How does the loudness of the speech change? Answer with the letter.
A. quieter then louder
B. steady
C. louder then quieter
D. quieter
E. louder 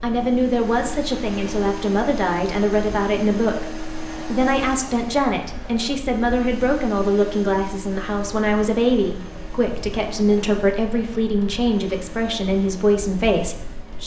B.